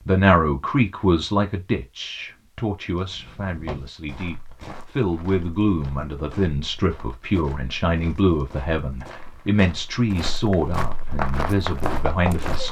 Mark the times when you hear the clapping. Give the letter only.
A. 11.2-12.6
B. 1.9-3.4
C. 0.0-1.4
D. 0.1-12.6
A.